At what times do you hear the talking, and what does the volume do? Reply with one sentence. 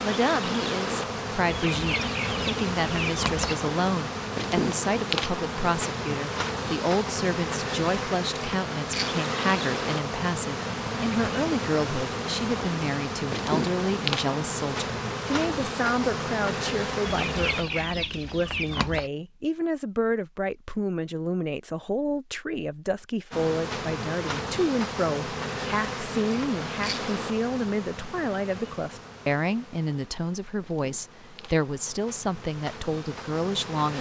The talking can be heard from 0.0 to 33.9 s, at a steady volume.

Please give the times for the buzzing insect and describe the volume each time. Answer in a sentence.
You can hear the buzzing insect from 0.0 to 17.6 s, at a steady volume; and from 23.3 to 33.9 s, getting quieter then louder.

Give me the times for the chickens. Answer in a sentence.
The chickens can be heard from 1.5 to 3.5 s and from 17.1 to 19.1 s.